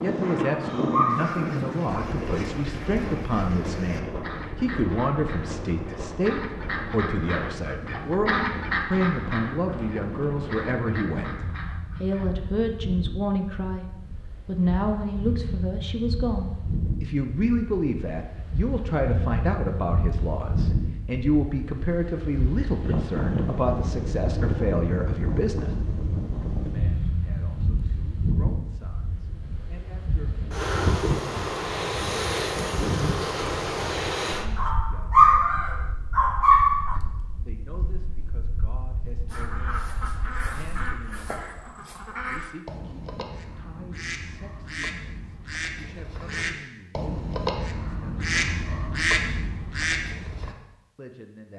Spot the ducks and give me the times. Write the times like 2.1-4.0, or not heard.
1.1-12.3, 39.2-50.5.